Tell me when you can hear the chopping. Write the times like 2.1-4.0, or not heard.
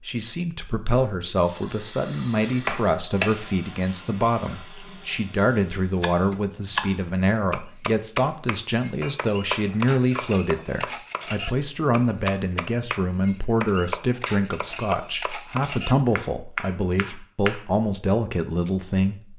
5.9-17.6.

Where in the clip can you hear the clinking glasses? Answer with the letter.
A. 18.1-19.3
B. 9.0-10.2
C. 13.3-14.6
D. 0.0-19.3
B.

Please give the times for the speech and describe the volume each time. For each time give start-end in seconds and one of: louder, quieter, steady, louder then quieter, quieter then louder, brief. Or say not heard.
0.0-19.3 steady.